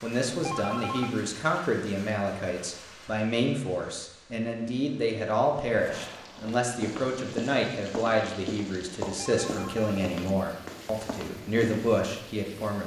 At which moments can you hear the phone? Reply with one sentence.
The phone can be heard from 0.3 to 1.1 s and from 9.2 to 10.1 s.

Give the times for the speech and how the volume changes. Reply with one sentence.
The speech can be heard from 0.0 to 12.8 s, at a steady volume.